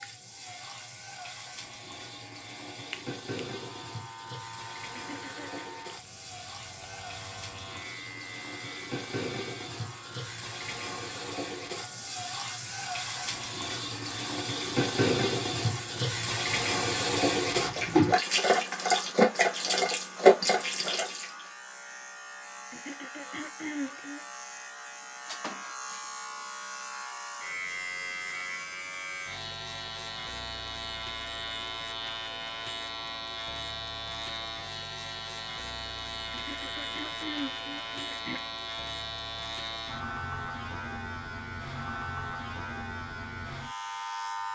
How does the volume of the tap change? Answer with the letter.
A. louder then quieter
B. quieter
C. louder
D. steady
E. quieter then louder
C.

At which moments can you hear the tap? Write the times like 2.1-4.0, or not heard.
0.0-21.4.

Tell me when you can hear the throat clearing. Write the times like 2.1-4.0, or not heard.
4.9-5.7, 22.7-24.2, 36.3-38.4.